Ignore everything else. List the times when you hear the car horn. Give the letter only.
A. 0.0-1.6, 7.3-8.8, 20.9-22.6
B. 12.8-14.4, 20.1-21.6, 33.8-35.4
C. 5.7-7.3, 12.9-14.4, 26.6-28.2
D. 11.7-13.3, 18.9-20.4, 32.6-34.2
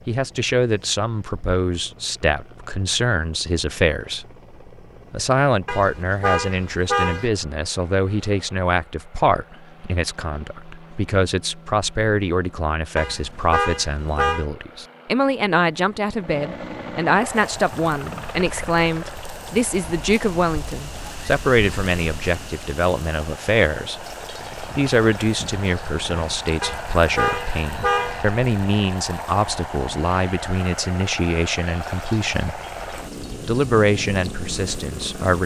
C.